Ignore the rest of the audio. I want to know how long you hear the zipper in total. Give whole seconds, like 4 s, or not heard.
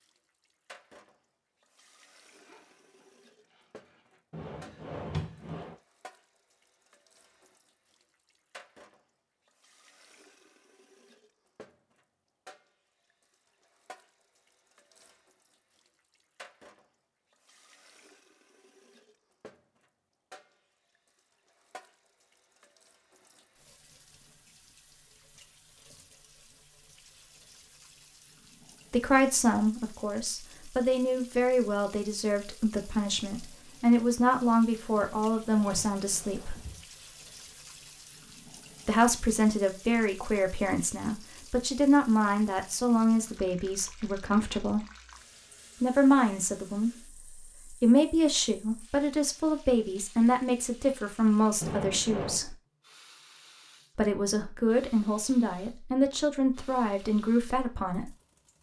2 s.